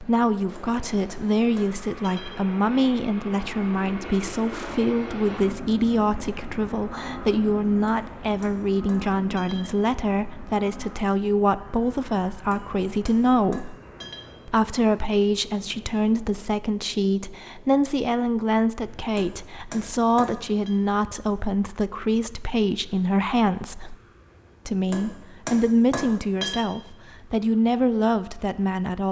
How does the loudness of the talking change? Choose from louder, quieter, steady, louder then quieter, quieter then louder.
steady.